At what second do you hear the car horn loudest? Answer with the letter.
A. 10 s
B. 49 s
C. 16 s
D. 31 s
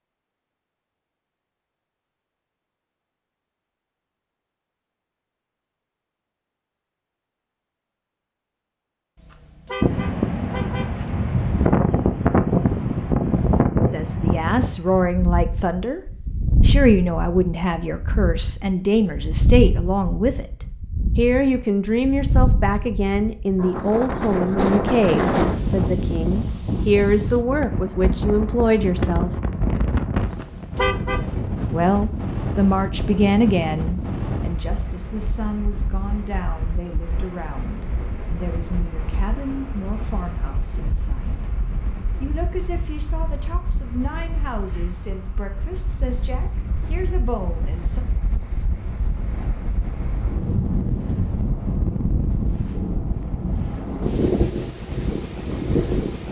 D.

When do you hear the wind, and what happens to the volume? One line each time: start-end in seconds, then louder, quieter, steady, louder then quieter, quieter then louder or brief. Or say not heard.
9.8-56.2 quieter then louder.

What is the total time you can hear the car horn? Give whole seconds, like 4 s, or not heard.
3 s.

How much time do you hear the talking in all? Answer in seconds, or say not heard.
30 s.